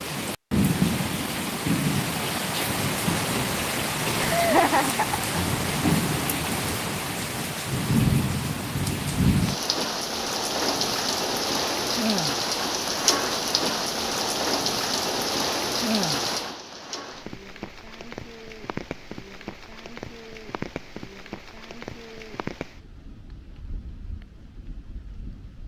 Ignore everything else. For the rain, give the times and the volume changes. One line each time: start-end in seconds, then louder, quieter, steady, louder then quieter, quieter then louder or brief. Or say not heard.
0.0-25.6 quieter.